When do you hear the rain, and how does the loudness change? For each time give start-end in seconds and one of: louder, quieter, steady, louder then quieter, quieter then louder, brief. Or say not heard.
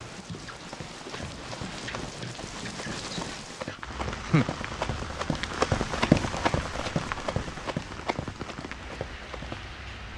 0.0-10.1 louder then quieter.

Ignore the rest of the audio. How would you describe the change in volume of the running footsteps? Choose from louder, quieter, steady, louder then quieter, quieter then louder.
louder then quieter.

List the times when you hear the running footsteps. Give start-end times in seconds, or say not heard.
0.6-9.6.